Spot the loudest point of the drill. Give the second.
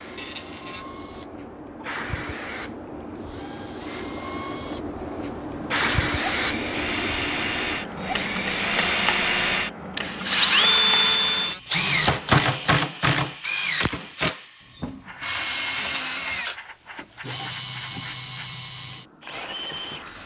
11 s.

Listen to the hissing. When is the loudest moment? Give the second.
6 s.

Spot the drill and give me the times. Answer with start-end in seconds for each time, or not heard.
0.0-20.2.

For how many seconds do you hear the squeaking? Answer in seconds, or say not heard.
2 s.